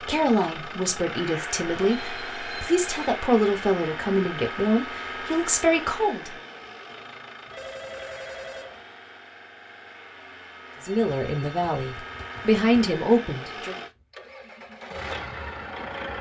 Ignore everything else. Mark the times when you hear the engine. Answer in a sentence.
You can hear the engine from 0.0 to 16.1 s.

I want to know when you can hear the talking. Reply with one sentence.
The talking can be heard from 0.1 to 6.3 s and from 10.8 to 13.8 s.